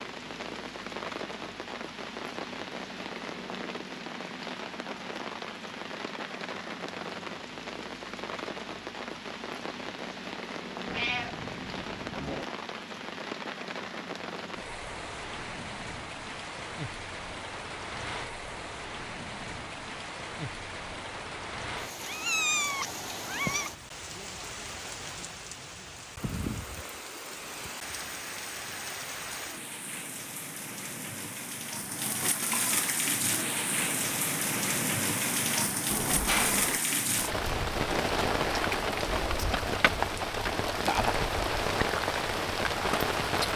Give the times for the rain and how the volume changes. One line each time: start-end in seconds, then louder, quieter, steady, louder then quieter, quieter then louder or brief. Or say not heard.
0.0-43.5 louder.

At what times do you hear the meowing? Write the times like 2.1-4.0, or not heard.
10.8-12.4, 22.0-23.7, 35.9-36.8.